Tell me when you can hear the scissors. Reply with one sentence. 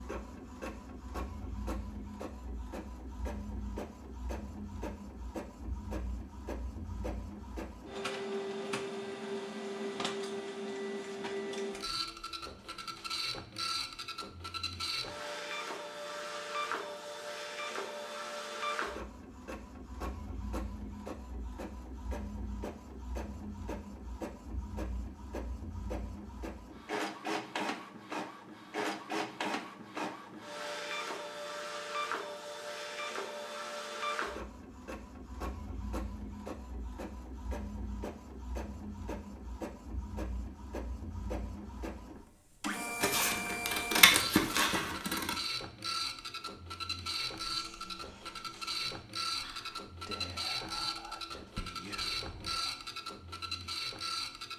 You can hear the scissors from 43.0 to 45.4 s.